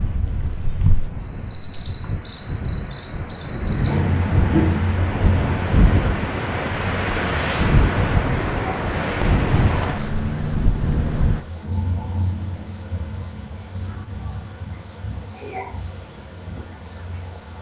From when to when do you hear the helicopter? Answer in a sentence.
You can't hear the helicopter here.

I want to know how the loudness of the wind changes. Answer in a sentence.
The loudness of the wind goes up.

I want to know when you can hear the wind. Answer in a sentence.
You can hear the wind from 0.0 to 11.4 s.